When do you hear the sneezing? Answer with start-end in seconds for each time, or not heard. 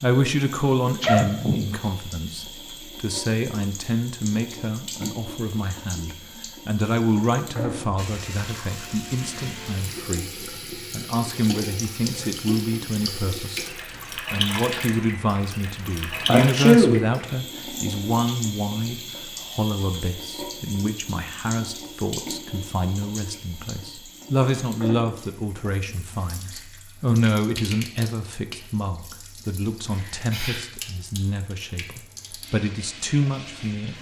1.0-1.7, 16.2-17.0, 29.9-30.6.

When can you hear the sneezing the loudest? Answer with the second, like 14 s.
17 s.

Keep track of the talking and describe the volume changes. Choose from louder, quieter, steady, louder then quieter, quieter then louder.
steady.